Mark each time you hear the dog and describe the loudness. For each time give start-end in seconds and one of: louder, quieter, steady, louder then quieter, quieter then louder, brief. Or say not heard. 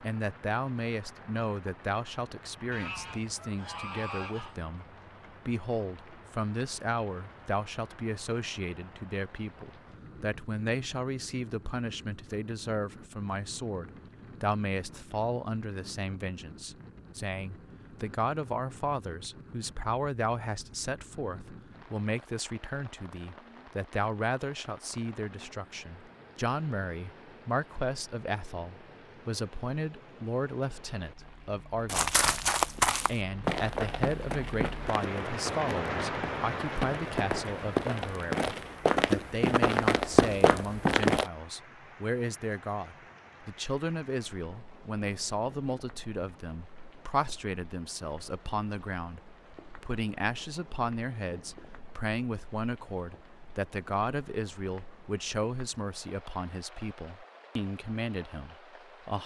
not heard.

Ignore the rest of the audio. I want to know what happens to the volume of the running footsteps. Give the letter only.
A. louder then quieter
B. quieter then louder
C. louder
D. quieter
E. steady
B.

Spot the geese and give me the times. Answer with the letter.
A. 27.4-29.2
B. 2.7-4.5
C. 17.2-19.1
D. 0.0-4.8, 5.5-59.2
B.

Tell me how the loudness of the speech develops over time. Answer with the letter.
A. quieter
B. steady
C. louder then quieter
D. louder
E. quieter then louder
B.